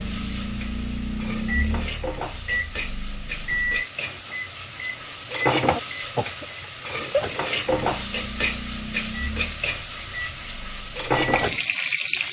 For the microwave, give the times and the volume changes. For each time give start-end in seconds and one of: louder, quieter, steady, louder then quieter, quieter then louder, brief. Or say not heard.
0.0-11.8 quieter.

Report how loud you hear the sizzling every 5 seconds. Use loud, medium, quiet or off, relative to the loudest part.
medium, loud, loud.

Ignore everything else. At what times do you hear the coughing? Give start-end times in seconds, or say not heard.
5.7-6.5.